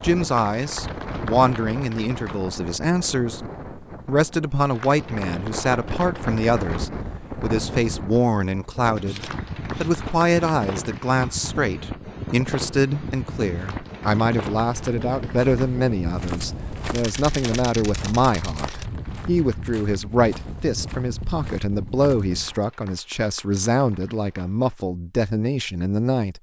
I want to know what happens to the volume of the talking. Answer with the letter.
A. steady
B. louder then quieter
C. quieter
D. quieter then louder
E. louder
A.